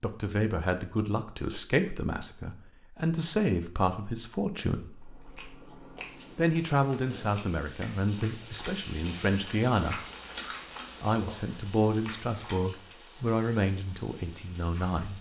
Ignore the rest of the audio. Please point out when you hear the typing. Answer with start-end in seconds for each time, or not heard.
not heard.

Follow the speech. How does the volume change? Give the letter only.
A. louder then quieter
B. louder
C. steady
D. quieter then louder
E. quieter
C.